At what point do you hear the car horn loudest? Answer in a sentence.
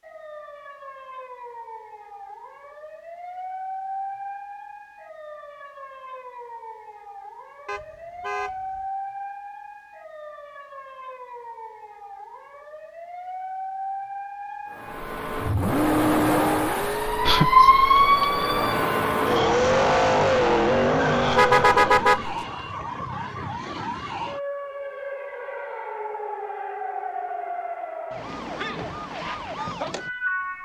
The loudest moment of the car horn is at 22 seconds.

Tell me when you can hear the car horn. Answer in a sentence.
The car horn can be heard from 7.7 to 8.8 s and from 21.2 to 22.4 s.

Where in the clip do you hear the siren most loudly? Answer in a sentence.
The loudest moment of the siren is at 18 seconds.